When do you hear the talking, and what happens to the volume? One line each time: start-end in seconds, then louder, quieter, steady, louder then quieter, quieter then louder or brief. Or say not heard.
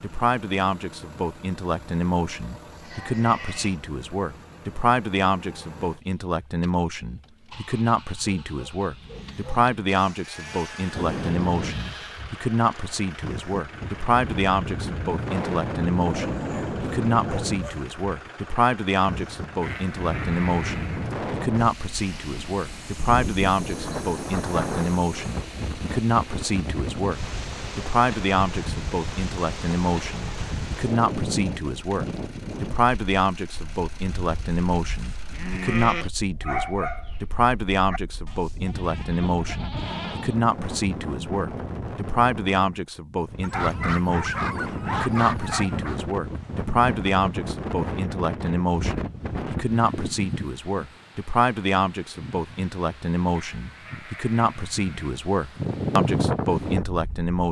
0.0-57.4 steady.